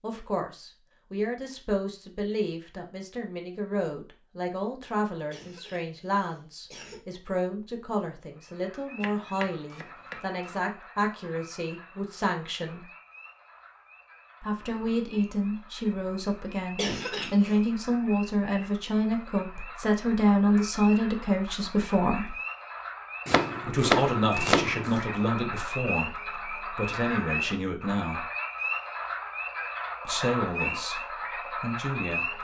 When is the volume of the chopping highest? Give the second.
24 s.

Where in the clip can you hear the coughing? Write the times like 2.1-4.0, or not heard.
5.3-7.0, 16.6-17.6.